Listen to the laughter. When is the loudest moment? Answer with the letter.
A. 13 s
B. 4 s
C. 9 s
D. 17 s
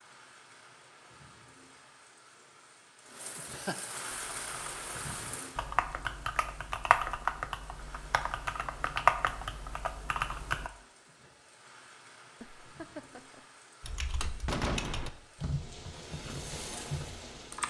B.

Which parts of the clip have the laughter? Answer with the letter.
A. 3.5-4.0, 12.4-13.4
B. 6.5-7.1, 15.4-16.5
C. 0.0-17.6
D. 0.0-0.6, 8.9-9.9
A.